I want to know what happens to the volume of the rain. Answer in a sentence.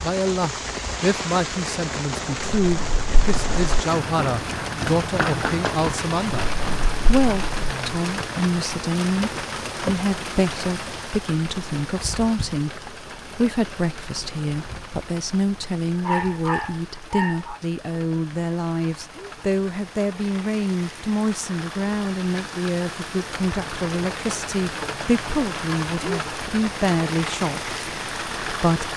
The loudness of the rain goes down, then up.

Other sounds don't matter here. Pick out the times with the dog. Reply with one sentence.
The dog can be heard from 15.9 to 17.6 s.